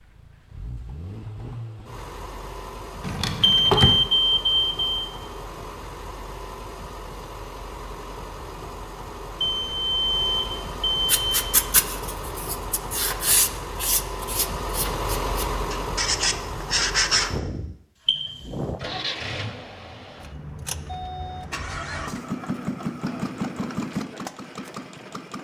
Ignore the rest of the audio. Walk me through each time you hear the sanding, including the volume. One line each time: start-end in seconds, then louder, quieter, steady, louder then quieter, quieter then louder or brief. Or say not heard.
11.1-17.3 quieter then louder.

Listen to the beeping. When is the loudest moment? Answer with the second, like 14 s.
4 s.